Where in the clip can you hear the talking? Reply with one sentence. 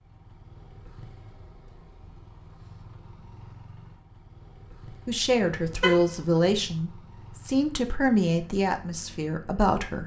The talking can be heard from 5.0 to 10.0 s.